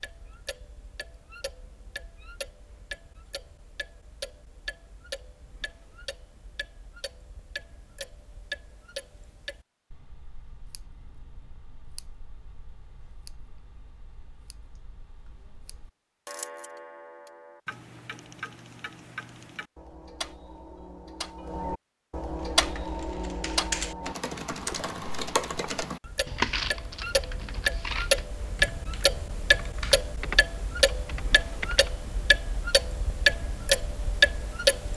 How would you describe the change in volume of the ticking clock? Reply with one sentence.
The loudness of the ticking clock goes up.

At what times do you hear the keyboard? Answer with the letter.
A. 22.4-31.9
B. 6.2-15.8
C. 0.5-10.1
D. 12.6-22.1
A.